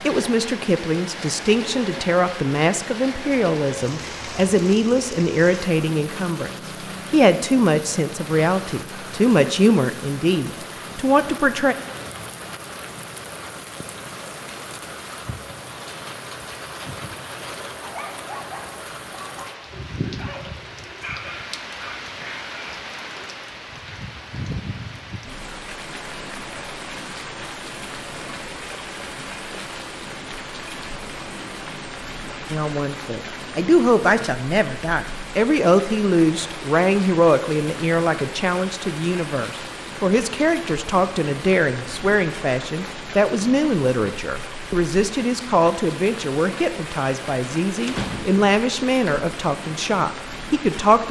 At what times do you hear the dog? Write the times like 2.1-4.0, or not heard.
17.8-23.2.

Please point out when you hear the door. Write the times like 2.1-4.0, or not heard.
47.9-48.5.